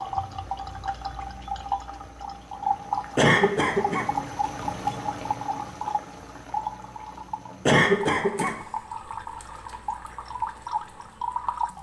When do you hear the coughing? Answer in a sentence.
The coughing can be heard from 3.1 to 4.1 s and from 7.7 to 8.6 s.